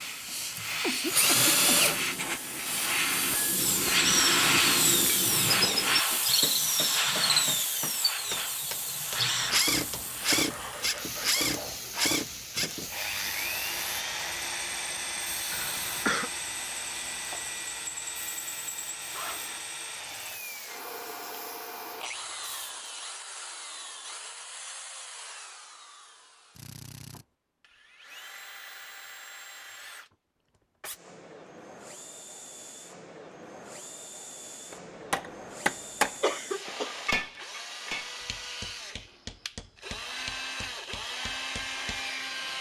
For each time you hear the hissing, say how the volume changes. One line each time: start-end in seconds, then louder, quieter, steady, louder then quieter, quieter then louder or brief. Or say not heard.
0.0-22.8 quieter.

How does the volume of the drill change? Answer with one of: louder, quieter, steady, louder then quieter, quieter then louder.
quieter then louder.